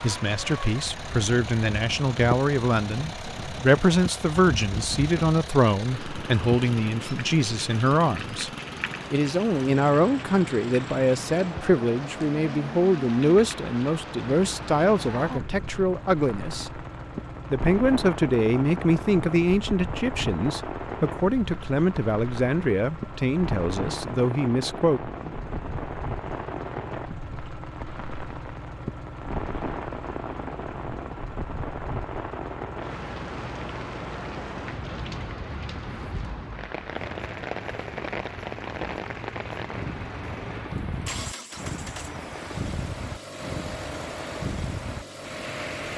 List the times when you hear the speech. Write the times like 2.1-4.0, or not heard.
0.0-8.5, 9.1-16.7, 17.5-25.0.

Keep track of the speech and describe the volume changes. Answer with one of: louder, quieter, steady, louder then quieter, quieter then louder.
steady.